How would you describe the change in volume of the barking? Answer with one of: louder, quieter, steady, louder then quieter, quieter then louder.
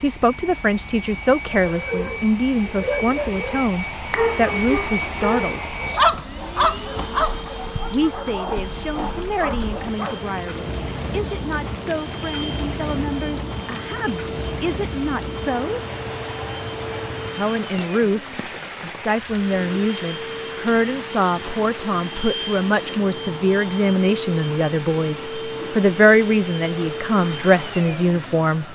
louder then quieter.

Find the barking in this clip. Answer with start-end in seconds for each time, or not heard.
1.6-10.3.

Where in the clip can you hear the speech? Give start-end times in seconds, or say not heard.
0.0-5.7, 7.9-15.8, 17.4-28.6.